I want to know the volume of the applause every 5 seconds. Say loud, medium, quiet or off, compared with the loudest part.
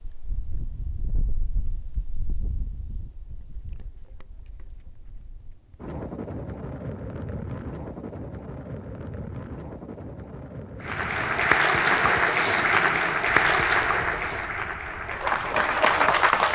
off, off, loud, loud.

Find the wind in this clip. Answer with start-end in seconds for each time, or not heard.
0.0-16.5.